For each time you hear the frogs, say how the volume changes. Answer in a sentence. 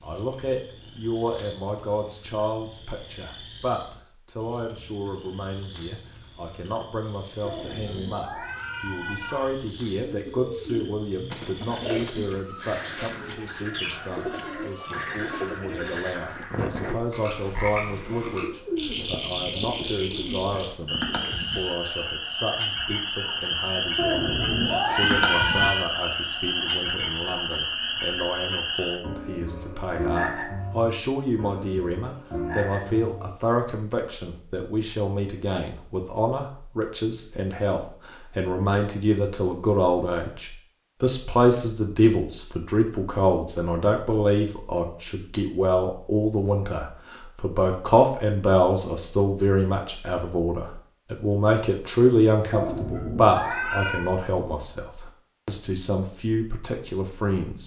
The frogs can be heard from 0.0 to 33.4 s, getting louder.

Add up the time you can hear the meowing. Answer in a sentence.
The meowing can be heard for 6 seconds in total.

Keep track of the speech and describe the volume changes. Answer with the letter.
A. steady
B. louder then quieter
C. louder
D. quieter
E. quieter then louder
C.